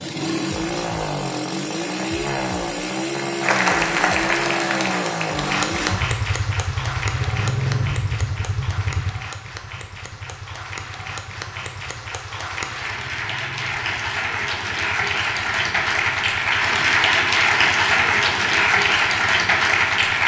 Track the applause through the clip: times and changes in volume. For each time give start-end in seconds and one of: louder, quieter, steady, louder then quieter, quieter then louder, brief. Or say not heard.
3.4-20.2 quieter then louder.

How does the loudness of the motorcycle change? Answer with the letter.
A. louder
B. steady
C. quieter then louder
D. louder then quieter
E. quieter
E.